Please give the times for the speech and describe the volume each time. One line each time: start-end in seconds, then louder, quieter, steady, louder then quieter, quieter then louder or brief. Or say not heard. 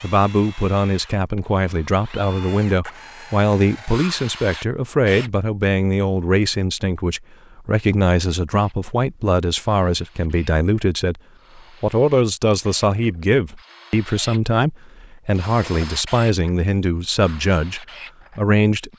0.0-18.9 steady.